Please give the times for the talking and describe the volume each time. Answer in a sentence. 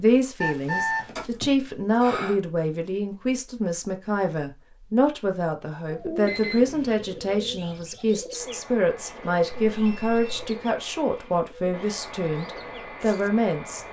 The talking can be heard from 0.0 to 13.8 s, at a steady volume.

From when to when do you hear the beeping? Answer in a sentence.
You can hear the beeping from 0.4 to 2.4 s, from 6.2 to 6.8 s and from 9.5 to 10.6 s.